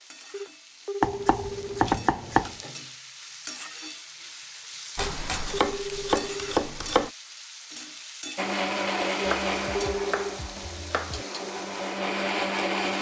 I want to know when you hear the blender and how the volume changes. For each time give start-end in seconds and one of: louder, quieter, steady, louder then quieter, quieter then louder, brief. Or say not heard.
8.3-12.9 quieter then louder.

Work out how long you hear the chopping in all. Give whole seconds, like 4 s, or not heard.
6 s.